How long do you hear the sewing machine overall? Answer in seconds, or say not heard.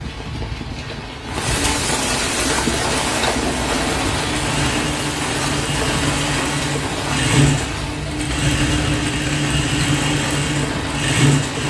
9 s.